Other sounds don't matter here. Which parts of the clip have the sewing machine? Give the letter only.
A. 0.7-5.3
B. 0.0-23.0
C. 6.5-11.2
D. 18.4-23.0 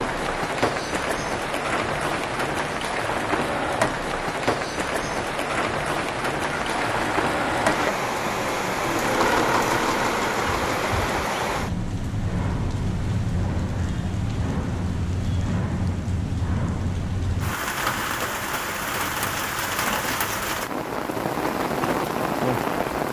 C.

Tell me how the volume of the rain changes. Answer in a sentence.
The loudness of the rain stays about the same.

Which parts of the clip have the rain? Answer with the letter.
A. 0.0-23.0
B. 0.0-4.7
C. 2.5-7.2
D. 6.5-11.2
A.